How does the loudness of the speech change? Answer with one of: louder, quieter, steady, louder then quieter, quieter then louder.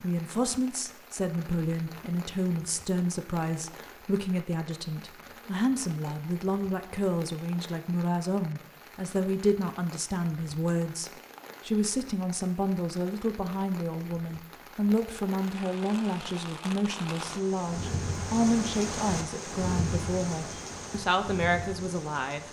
steady.